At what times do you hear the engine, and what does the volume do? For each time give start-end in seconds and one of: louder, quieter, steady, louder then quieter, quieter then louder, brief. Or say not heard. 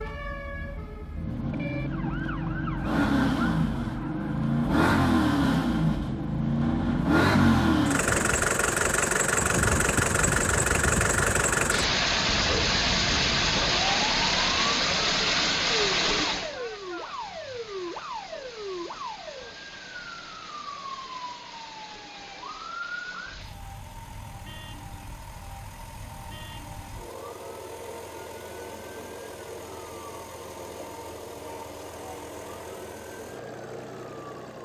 0.0-34.6 quieter.